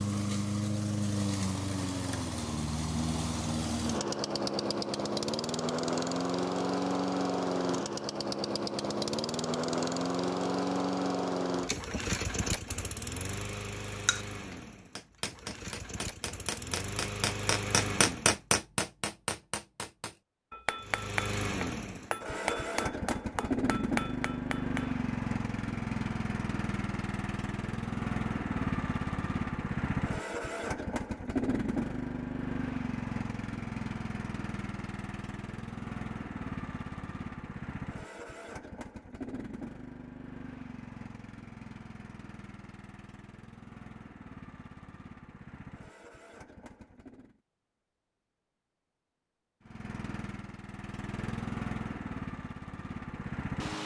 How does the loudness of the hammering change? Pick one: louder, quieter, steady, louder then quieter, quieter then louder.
louder then quieter.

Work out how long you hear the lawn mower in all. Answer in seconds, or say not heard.
49 s.